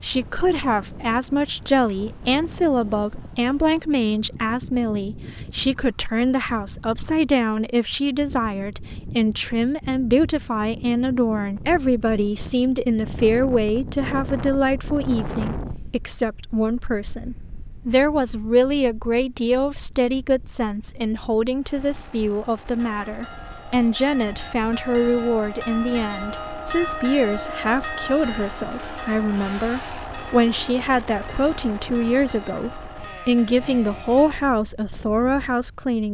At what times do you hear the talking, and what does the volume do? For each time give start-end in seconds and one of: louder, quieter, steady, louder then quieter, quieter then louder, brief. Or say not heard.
0.0-36.0 steady.